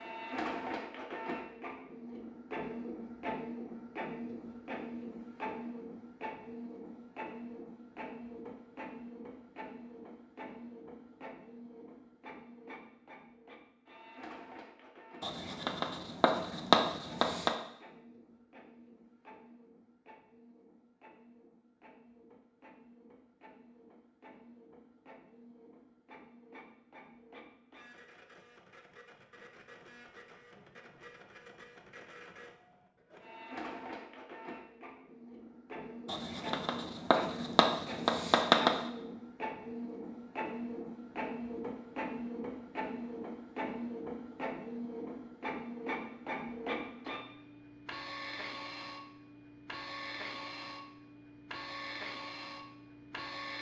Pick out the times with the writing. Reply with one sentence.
The writing can be heard from 15.2 to 17.6 s and from 36.0 to 38.8 s.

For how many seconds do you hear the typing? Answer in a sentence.
The typing can't be heard in this clip.